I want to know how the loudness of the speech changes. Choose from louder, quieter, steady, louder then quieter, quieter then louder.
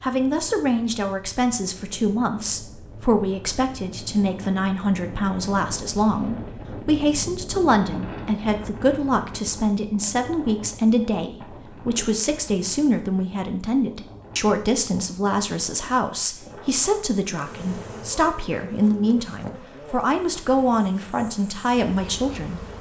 steady.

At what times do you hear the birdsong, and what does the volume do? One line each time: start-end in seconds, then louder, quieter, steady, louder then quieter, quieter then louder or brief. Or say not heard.
not heard.